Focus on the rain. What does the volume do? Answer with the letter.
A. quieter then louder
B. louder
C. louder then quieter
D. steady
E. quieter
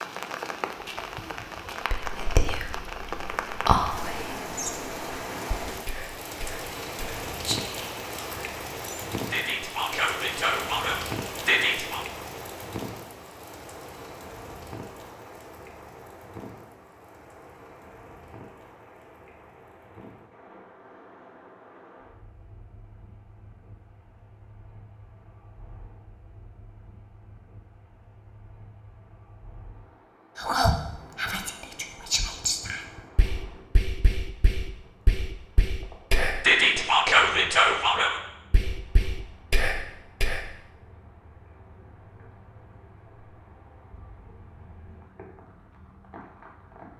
E.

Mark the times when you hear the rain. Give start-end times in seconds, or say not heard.
0.0-46.9.